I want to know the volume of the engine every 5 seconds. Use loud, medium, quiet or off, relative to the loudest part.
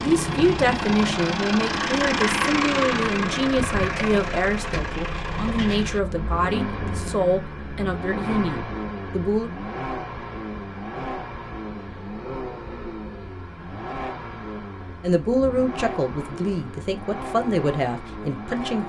loud, medium, medium, medium.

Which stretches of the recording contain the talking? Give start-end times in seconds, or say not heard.
0.0-9.5, 15.0-18.8.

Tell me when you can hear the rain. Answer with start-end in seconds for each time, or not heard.
not heard.